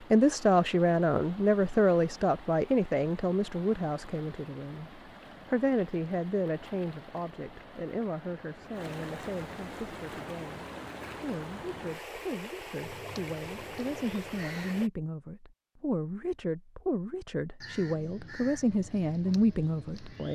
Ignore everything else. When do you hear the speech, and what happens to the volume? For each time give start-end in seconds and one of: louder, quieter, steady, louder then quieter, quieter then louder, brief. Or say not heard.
0.1-20.3 quieter then louder.